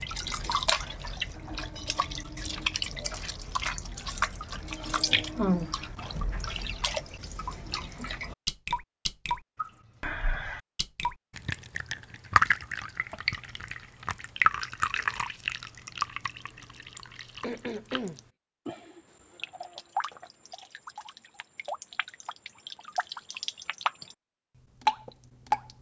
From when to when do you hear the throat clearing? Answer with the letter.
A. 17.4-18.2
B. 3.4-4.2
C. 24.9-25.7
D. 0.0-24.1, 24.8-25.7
A.